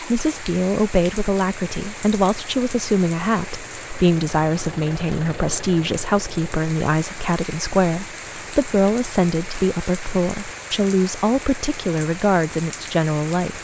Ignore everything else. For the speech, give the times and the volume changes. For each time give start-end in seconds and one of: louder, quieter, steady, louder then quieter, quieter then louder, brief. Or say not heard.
0.0-13.5 steady.